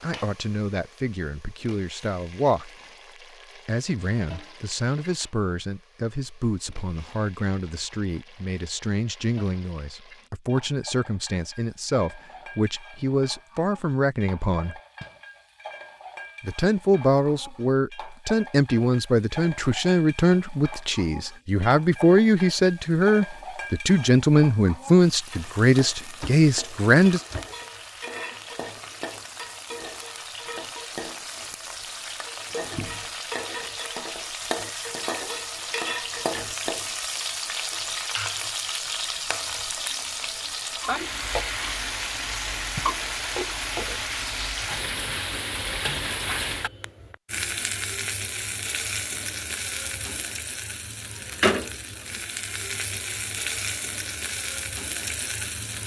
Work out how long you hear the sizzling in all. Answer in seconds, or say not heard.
56 s.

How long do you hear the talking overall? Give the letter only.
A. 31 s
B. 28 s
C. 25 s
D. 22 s
C.